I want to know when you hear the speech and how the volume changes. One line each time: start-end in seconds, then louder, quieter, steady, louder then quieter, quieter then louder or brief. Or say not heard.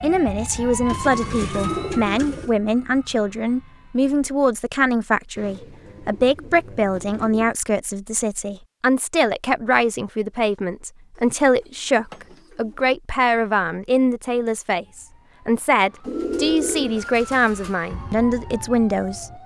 0.0-19.4 steady.